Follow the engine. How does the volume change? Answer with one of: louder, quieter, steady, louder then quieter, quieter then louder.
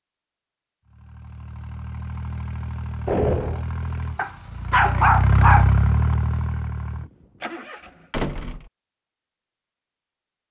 louder then quieter.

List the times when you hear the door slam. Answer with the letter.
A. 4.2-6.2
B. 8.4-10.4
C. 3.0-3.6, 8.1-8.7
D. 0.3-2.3
C.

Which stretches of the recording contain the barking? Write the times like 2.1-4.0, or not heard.
4.2-6.2.